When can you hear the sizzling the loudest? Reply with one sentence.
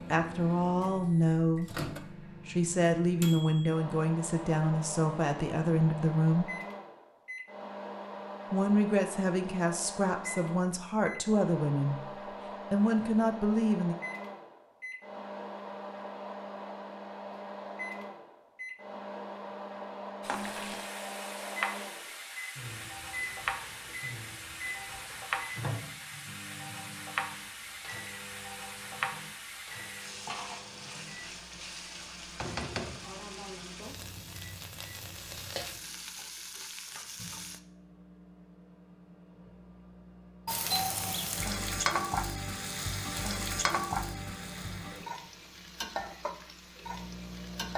The volume of the sizzling peaks at 42 seconds.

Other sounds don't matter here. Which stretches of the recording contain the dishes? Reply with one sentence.
You can't hear the dishes here.